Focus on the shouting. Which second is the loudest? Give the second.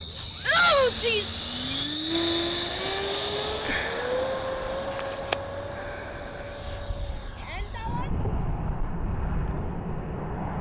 1 s.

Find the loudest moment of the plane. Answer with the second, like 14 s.
2 s.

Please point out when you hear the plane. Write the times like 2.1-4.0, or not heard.
0.0-10.5.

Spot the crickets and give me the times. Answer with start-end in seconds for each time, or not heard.
0.0-6.5.